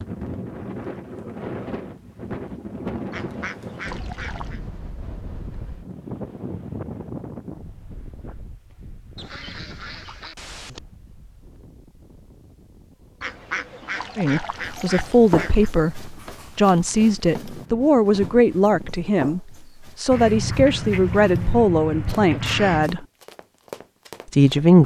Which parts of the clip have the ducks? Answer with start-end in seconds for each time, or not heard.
3.1-4.6, 9.2-10.8, 13.2-15.7, 20.1-22.9.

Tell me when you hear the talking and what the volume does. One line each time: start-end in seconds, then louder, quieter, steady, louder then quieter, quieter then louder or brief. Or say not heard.
14.2-23.1 steady
24.3-24.8 brief.